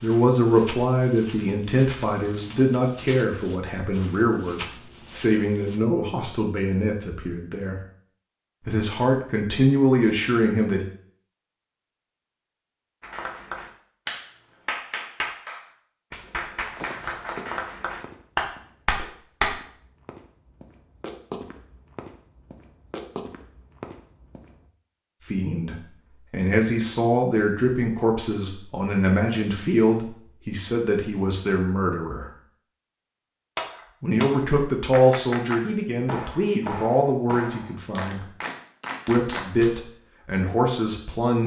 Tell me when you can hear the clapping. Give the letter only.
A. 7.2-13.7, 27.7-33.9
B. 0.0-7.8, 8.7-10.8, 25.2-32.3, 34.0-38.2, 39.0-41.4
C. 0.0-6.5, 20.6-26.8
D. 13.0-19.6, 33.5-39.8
D.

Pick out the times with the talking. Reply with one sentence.
You can hear the talking from 0.0 to 7.8 s, from 8.7 to 10.8 s, from 25.2 to 32.3 s, from 34.0 to 38.2 s and from 39.0 to 41.4 s.